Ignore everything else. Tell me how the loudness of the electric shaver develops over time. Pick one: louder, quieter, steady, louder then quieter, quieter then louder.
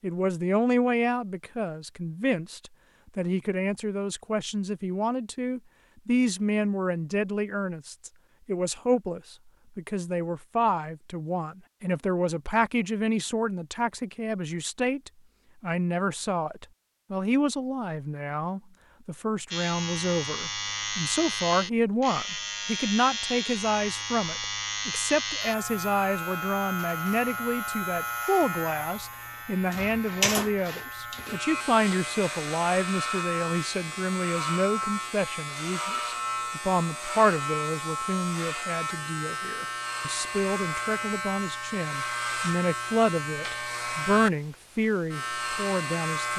steady.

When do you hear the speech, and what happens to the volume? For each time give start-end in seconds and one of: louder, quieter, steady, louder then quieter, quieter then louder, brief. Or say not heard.
0.0-46.3 steady.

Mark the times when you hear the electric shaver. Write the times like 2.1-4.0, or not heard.
19.5-46.3.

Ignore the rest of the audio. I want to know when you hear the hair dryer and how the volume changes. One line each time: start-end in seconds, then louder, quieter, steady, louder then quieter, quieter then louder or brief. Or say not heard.
not heard.